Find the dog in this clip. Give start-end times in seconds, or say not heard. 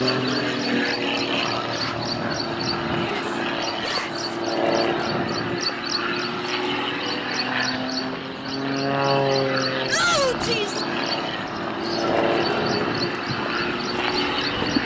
not heard.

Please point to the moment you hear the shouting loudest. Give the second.
10 s.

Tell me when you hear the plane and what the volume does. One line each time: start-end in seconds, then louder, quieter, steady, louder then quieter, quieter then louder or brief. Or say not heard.
0.0-14.8 steady.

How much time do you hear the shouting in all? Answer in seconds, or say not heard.
2 s.